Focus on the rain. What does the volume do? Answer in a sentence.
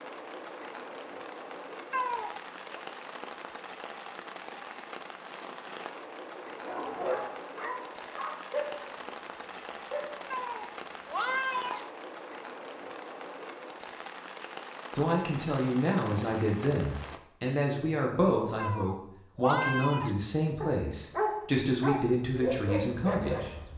The volume of the rain stays about the same.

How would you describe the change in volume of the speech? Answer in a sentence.
The loudness of the speech stays about the same.